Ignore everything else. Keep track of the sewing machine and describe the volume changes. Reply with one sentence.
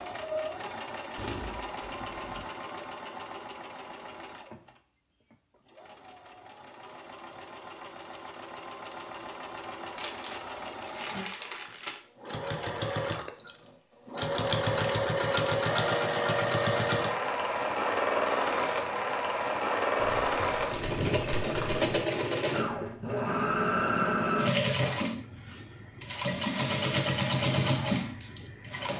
The volume of the sewing machine goes up.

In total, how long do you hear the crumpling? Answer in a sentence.
You can hear the crumpling for 5 seconds altogether.